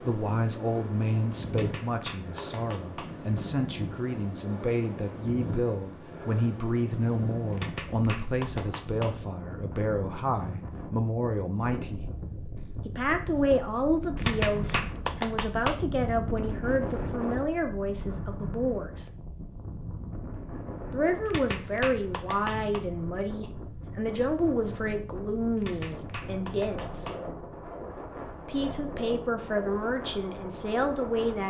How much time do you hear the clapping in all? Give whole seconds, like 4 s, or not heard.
8 s.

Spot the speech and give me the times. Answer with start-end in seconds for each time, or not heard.
0.0-12.1, 12.8-19.1, 20.9-27.1, 28.4-31.4.